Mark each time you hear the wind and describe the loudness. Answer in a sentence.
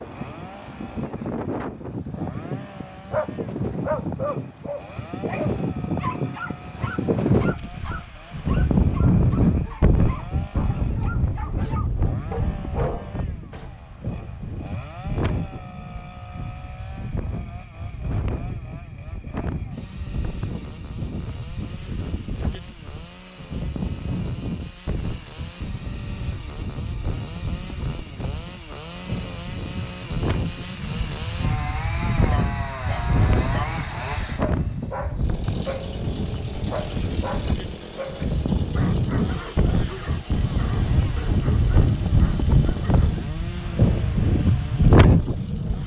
You can hear the wind from 0.0 to 45.8 s, getting quieter then louder.